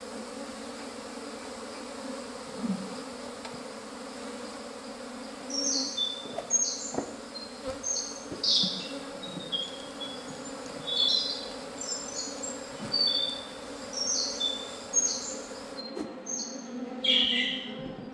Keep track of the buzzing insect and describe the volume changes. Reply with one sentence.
The volume of the buzzing insect stays about the same.